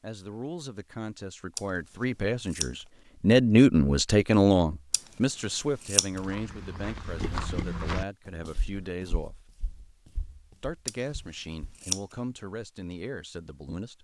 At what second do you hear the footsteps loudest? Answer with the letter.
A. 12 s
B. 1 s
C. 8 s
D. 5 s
C.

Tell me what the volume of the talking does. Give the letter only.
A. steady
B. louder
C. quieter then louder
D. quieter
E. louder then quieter
E.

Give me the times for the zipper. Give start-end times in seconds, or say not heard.
not heard.